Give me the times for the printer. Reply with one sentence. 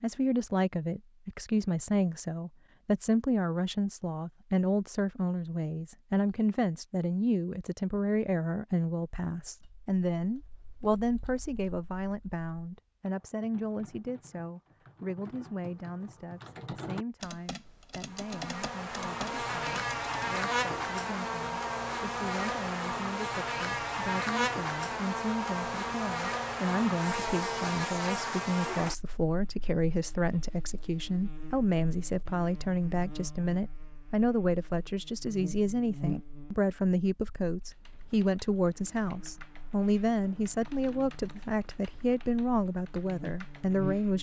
The printer can't be heard in this clip.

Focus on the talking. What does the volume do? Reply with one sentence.
The volume of the talking goes down, then up.